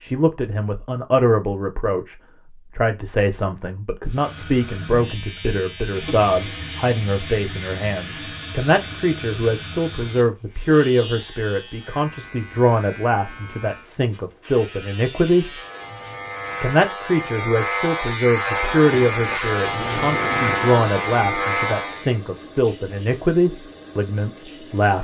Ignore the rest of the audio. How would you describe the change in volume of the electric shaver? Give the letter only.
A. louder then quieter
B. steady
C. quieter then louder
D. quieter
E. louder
E.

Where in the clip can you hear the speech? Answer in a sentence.
The speech can be heard from 0.0 to 15.6 s and from 16.6 to 24.9 s.